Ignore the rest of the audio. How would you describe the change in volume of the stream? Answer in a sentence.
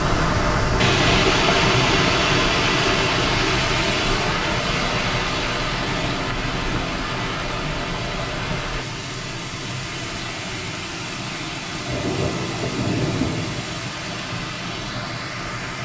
The volume of the stream goes down.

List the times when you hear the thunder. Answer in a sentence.
You can hear the thunder from 11.8 to 13.7 s.